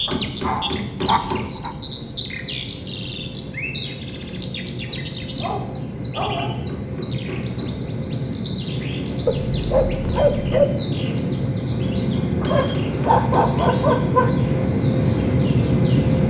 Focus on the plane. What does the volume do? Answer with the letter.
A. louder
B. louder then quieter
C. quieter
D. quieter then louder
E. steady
A.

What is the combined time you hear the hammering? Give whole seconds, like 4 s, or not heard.
5 s.